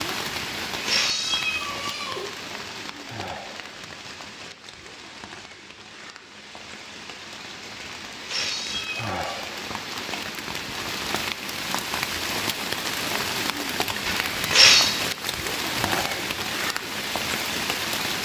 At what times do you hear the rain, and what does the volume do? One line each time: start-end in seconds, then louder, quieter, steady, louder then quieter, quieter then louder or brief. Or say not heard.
0.0-18.1 quieter then louder.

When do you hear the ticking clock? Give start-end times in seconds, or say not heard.
not heard.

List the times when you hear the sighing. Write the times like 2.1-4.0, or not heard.
3.0-3.8, 8.9-9.7, 15.7-16.2.